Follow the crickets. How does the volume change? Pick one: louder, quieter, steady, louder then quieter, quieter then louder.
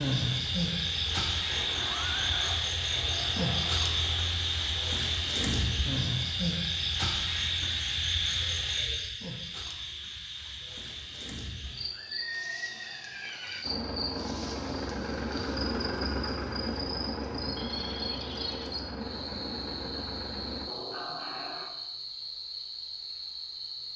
quieter.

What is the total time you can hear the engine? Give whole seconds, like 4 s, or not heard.
16 s.